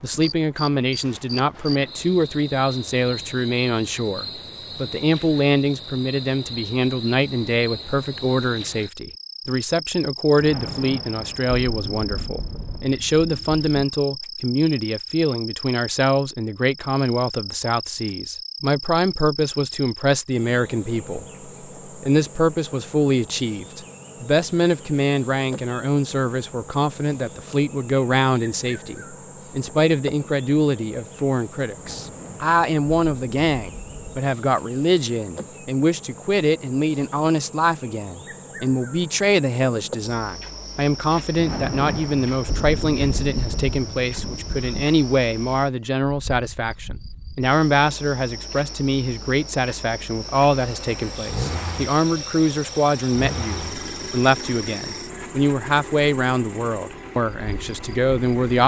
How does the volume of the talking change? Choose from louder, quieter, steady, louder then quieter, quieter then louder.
steady.